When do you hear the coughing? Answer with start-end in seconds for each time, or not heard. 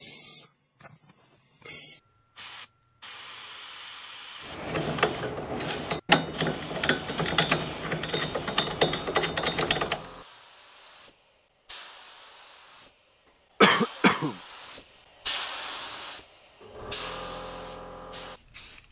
13.6-14.3.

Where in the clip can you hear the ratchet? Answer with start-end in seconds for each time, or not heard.
4.5-10.1.